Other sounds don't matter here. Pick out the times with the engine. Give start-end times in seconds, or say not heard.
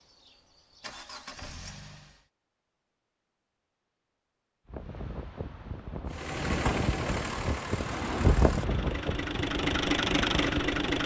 0.0-2.2, 6.1-11.0.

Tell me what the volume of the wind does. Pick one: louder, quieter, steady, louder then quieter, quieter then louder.
louder then quieter.